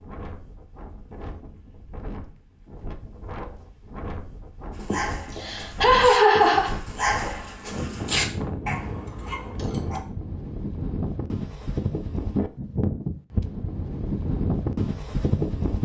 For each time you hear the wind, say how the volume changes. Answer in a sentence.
You can hear the wind from 0.0 to 15.7 s, getting louder.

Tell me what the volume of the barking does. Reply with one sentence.
The loudness of the barking goes up, then down.